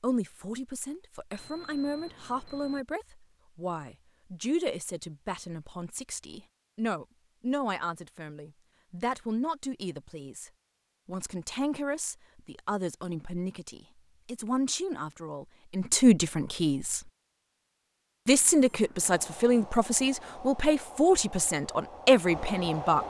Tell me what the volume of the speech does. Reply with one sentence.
The loudness of the speech goes up.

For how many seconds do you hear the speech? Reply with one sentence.
You can hear the speech for 22 seconds altogether.